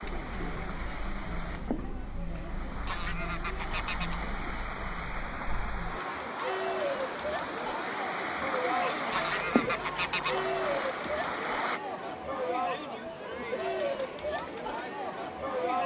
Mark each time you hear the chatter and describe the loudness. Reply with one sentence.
You can hear the chatter from 0.0 to 15.8 s, getting louder.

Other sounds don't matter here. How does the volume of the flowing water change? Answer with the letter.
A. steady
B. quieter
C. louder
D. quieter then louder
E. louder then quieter
C.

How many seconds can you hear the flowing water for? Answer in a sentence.
The flowing water can be heard for 12 seconds in total.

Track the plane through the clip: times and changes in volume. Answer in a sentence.
The plane can't be heard in this clip.